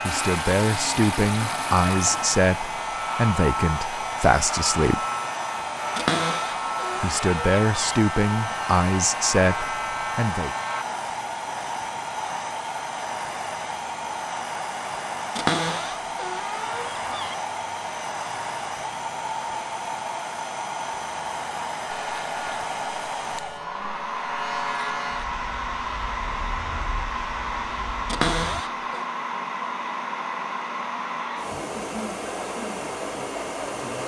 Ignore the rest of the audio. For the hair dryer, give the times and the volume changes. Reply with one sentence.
The hair dryer can be heard from 0.0 to 34.0 s, at a steady volume.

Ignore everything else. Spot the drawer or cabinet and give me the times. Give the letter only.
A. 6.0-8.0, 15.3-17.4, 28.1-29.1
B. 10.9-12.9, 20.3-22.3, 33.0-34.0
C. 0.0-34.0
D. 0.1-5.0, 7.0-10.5
A.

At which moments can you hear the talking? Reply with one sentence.
You can hear the talking from 0.1 to 5.0 s and from 7.0 to 10.5 s.